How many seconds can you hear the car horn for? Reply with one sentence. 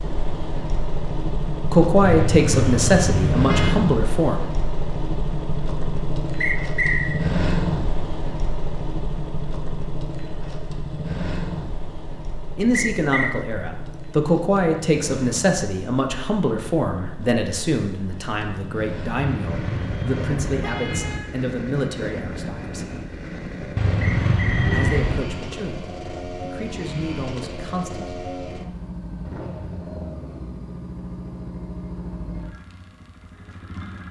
The car horn can be heard for 5 seconds in total.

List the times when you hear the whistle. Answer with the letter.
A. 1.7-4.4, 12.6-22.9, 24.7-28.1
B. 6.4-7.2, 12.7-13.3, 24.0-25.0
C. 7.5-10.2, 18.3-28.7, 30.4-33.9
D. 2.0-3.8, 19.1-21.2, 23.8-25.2
B.